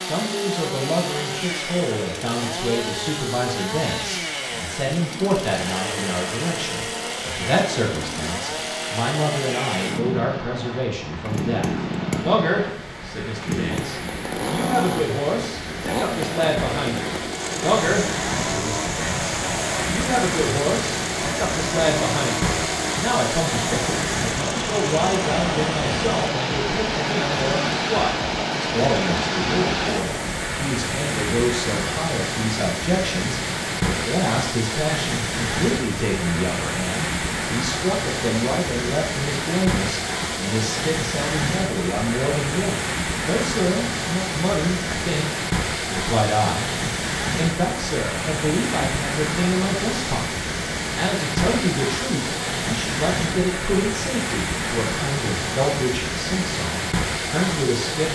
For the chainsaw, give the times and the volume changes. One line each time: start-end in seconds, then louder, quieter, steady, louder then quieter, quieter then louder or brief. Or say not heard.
0.0-30.4 steady.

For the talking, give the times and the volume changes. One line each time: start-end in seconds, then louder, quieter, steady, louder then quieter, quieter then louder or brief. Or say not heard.
0.0-46.8 steady
47.4-58.1 steady.